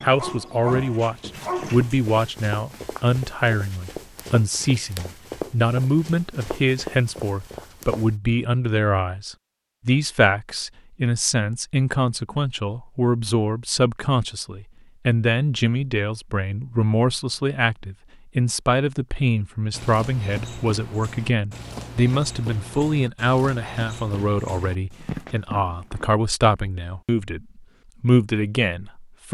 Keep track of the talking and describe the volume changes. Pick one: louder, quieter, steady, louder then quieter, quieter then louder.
steady.